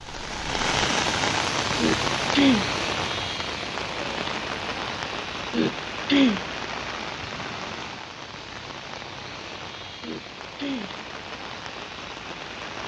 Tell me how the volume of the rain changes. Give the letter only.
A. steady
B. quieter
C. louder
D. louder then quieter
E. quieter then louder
B.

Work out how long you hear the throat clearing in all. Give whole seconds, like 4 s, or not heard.
3 s.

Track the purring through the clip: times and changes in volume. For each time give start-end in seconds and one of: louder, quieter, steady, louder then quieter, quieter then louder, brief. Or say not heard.
not heard.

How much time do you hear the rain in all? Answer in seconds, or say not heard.
13 s.